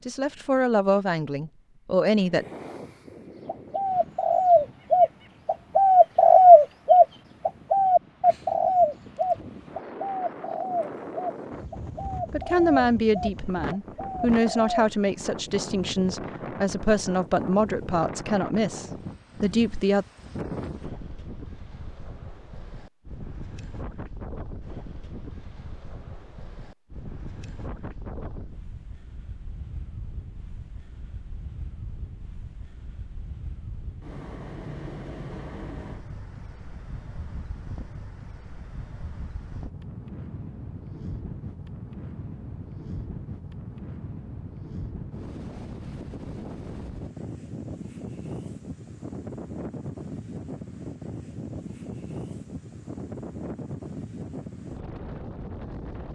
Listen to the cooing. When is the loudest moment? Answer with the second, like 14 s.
6 s.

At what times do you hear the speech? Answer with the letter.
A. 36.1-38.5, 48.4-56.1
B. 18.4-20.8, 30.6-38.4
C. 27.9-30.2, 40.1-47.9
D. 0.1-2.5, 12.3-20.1
D.